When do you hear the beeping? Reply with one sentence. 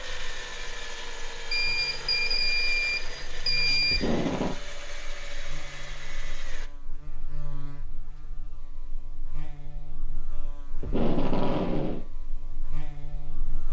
The beeping can be heard from 1.5 to 4.0 s.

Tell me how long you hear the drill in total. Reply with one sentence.
You can hear the drill for 7 seconds altogether.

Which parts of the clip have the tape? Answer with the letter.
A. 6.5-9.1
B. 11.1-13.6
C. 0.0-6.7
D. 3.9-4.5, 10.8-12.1
D.